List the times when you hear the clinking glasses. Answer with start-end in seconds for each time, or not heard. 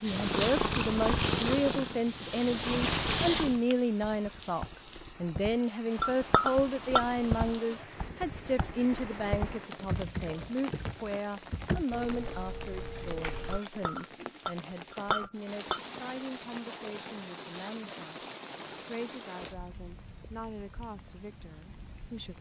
6.0-7.0, 13.5-15.8.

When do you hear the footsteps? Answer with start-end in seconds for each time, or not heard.
not heard.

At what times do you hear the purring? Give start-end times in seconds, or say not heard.
0.0-3.6.